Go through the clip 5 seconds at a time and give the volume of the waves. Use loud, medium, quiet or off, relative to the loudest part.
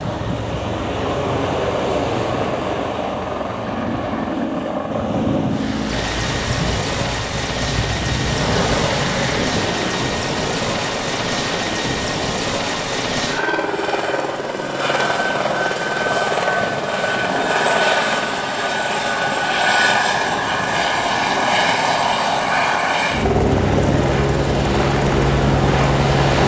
loud, loud, medium, medium, medium, loud.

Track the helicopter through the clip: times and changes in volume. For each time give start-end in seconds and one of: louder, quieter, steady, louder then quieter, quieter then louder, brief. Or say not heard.
0.1-26.4 louder.